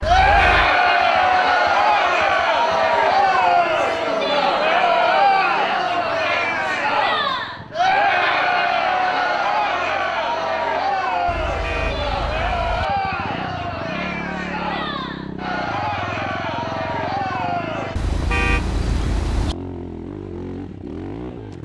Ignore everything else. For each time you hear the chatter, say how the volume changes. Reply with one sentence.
The chatter can be heard from 0.0 to 17.9 s, getting quieter.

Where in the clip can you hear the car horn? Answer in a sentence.
You can hear the car horn from 0.0 to 0.8 s, from 11.2 to 12.8 s and from 17.9 to 19.6 s.